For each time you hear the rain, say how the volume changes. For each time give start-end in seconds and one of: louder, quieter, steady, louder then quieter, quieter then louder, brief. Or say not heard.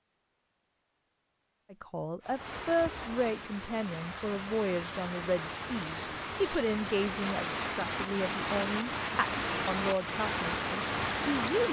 2.2-11.6 louder.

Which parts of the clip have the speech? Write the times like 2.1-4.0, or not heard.
1.7-11.6.